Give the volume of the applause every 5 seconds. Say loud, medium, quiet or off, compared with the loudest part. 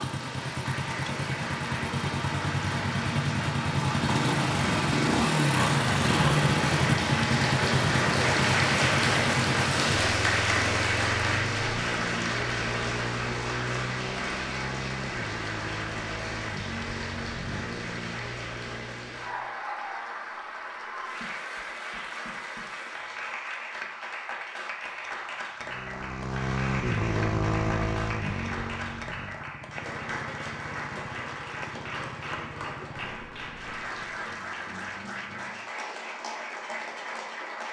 medium, loud, loud, medium, medium, medium, medium, medium.